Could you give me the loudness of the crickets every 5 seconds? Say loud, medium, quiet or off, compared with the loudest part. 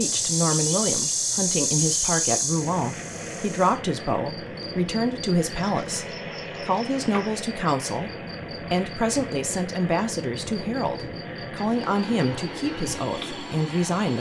loud, quiet, quiet.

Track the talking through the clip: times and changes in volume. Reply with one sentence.
The talking can be heard from 0.0 to 14.1 s, at a steady volume.